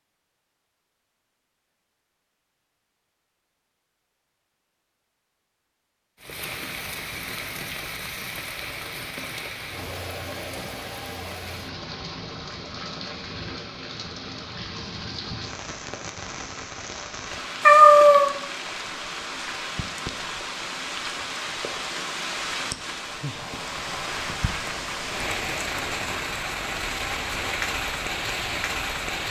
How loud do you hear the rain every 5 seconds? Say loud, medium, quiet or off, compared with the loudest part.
off, medium, medium, medium, loud, loud.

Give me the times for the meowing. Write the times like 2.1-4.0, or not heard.
17.6-18.3.